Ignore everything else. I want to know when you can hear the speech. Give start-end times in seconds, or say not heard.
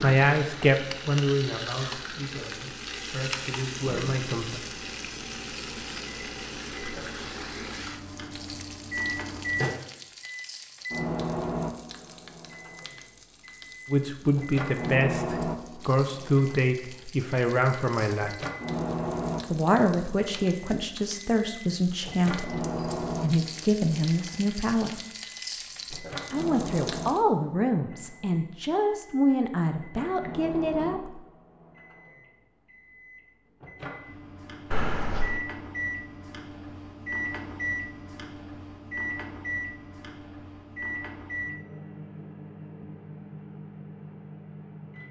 0.0-4.6, 13.8-18.4, 19.4-25.0, 26.3-31.2.